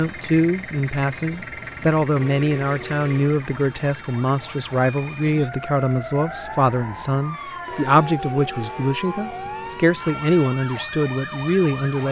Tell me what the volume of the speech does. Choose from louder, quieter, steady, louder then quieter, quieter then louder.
steady.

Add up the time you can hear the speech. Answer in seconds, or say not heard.
12 s.